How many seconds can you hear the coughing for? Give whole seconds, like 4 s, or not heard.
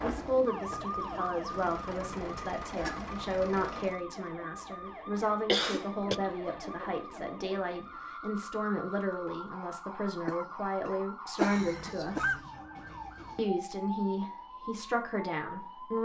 3 s.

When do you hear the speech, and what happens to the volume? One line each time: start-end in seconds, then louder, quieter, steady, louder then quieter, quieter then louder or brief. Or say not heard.
0.0-12.4 steady
13.3-15.9 brief.